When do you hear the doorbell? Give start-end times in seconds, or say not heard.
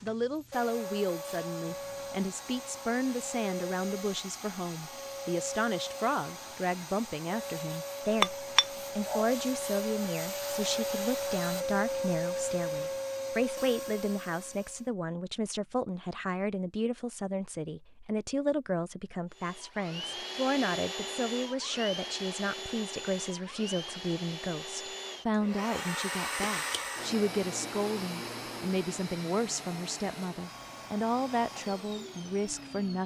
not heard.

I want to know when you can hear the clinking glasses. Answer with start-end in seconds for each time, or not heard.
8.2-9.3.